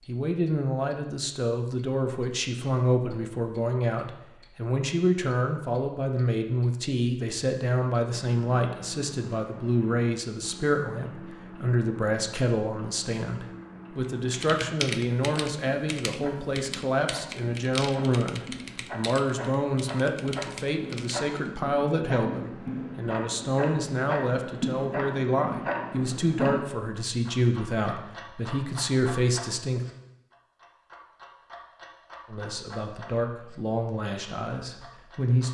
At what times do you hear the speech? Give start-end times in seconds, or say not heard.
0.1-29.8, 32.2-35.4.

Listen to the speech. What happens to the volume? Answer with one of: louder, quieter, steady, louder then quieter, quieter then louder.
steady.